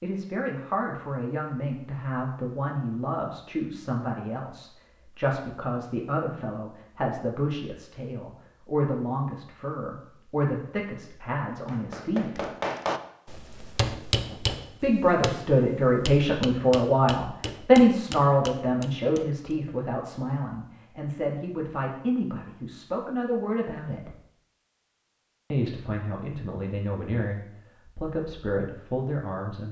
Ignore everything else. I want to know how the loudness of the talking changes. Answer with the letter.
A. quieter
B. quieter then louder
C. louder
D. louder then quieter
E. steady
D.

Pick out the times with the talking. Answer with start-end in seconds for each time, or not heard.
0.0-12.4, 14.8-24.1, 25.5-29.6.